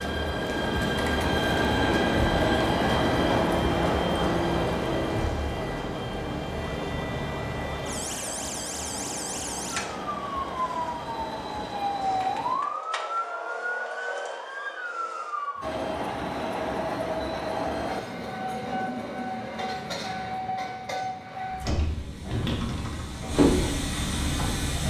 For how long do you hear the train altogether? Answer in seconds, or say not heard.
22 s.